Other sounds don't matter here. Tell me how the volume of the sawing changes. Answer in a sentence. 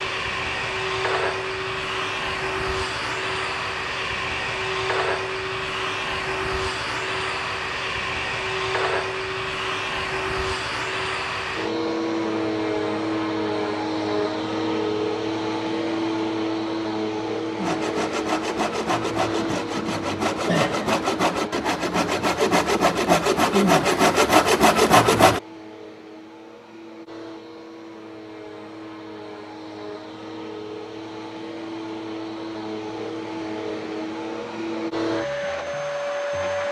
The loudness of the sawing goes up.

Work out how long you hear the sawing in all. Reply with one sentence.
The sawing can be heard for 8 seconds in total.